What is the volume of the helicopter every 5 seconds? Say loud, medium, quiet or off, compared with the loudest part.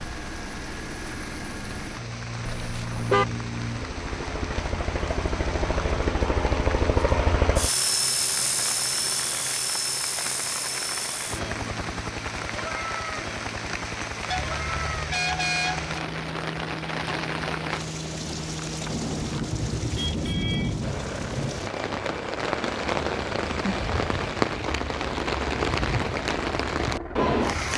medium, loud, medium, medium, medium, medium.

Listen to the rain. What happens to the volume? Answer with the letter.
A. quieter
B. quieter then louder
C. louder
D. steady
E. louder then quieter
C.